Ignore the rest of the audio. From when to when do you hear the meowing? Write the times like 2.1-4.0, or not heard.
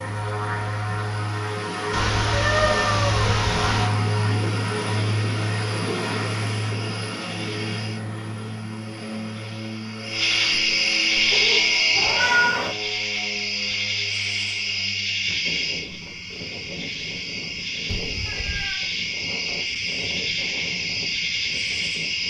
1.9-3.9, 11.9-12.7, 17.9-18.8.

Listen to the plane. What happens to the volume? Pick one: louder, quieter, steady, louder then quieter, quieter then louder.
quieter.